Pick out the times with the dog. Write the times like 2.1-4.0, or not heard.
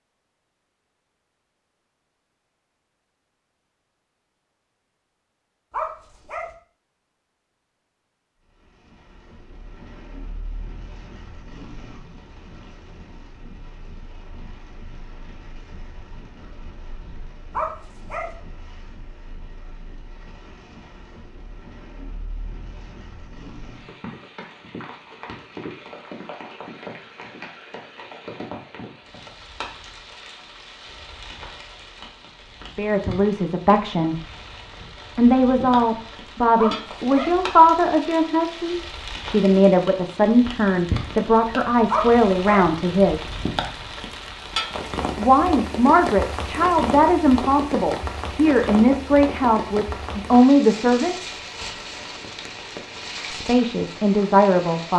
5.7-6.5, 17.5-18.4, 36.5-37.4, 41.9-42.7.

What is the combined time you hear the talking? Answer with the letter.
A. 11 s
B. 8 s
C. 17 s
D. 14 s
C.